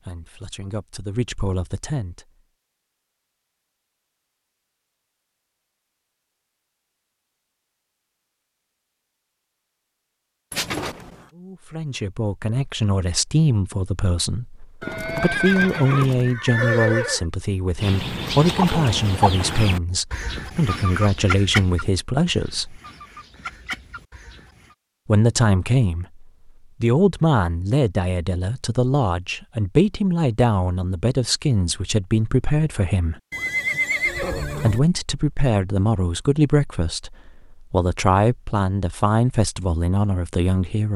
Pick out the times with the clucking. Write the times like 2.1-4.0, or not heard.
17.8-24.8.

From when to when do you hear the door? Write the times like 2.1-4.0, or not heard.
not heard.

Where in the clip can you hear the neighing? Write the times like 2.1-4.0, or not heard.
10.5-11.2, 14.8-17.2, 33.3-34.8.